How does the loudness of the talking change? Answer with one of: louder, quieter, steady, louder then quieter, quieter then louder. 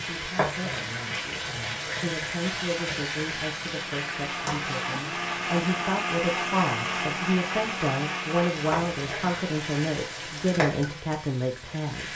louder.